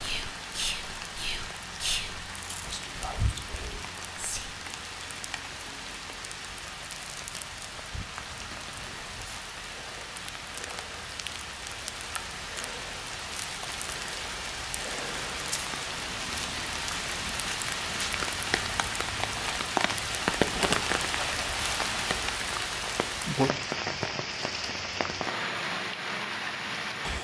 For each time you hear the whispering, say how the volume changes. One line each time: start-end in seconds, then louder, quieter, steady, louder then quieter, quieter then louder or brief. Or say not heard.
0.0-4.5 quieter.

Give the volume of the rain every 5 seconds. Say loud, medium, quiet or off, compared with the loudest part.
medium, medium, medium, loud, loud, loud.